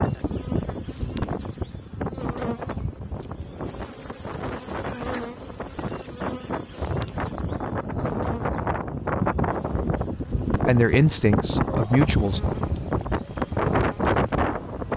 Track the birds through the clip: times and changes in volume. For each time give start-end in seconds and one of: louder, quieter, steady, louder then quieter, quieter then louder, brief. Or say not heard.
not heard.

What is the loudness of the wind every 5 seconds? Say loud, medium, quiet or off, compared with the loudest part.
medium, loud, loud.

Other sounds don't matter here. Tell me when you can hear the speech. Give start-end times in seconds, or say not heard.
10.7-12.4.